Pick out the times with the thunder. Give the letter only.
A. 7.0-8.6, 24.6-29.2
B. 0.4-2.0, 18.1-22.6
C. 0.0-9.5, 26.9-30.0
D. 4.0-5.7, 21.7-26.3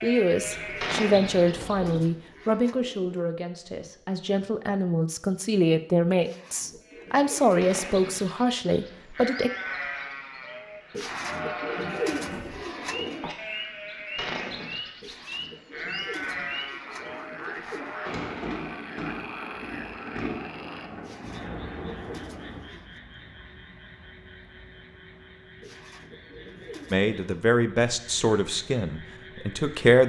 B.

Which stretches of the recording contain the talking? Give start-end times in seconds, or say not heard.
0.0-9.5, 26.9-30.0.